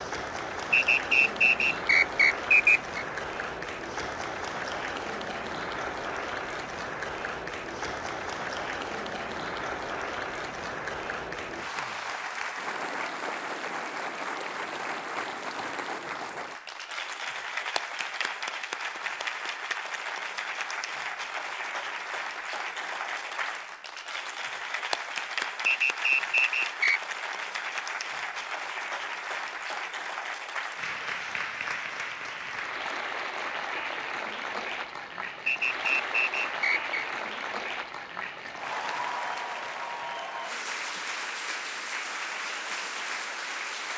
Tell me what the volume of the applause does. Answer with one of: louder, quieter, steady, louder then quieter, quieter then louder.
steady.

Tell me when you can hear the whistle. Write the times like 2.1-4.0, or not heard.
0.7-3.0, 25.6-27.0, 35.5-37.0.